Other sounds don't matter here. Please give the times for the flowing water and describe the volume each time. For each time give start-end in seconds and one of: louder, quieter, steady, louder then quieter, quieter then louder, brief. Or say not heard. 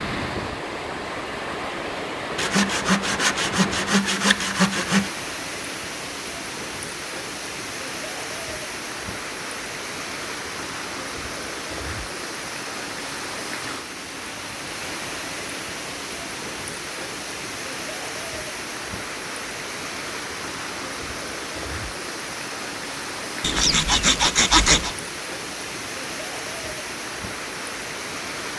0.0-28.5 steady.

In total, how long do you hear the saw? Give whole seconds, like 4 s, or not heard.
4 s.